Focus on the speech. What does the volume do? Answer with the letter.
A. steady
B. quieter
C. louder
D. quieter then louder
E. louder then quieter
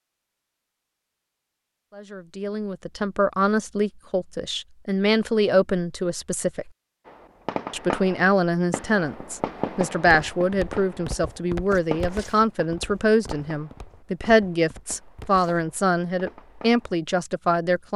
A.